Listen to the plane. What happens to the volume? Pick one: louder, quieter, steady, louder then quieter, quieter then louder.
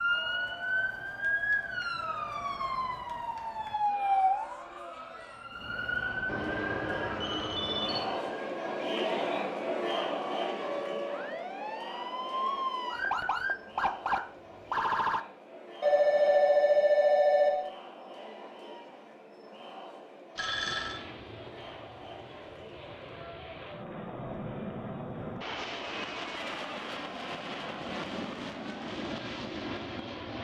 louder.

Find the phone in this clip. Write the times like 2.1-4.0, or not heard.
6.2-8.1, 15.8-17.7, 20.4-21.0.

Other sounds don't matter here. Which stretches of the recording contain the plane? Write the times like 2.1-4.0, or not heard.
20.7-30.3.